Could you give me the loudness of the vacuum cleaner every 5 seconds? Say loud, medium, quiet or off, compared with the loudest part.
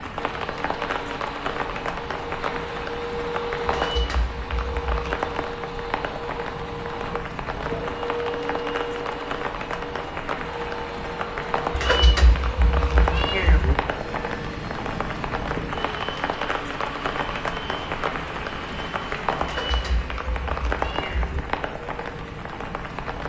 loud, loud, loud, medium, off.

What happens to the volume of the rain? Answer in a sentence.
The volume of the rain stays about the same.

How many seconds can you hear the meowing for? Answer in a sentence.
You can hear the meowing for 5 seconds altogether.